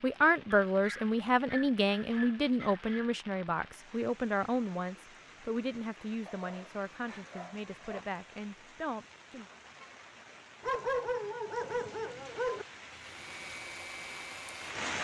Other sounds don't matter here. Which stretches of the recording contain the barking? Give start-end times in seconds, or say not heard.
0.7-3.1, 6.2-8.0, 10.6-12.7.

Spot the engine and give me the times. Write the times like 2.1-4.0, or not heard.
12.9-14.8.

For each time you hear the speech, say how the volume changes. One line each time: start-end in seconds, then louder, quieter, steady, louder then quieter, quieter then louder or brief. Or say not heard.
0.0-9.4 quieter.